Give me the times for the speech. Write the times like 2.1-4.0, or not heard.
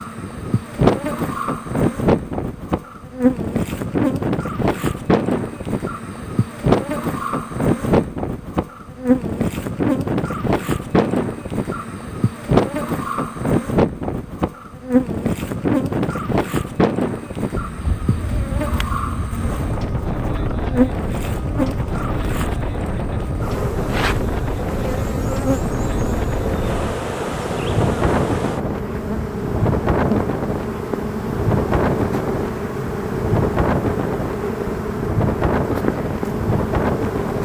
not heard.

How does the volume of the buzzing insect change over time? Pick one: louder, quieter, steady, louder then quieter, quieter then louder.
steady.